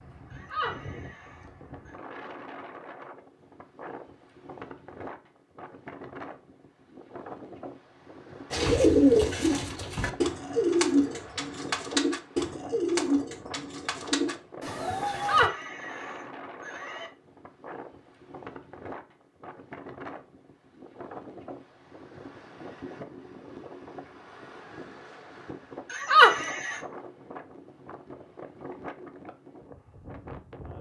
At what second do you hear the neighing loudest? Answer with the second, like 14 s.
26 s.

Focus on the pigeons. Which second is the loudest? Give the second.
9 s.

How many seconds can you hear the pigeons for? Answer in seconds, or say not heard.
7 s.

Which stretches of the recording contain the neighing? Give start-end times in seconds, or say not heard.
0.3-1.9, 15.1-17.1, 25.9-26.8.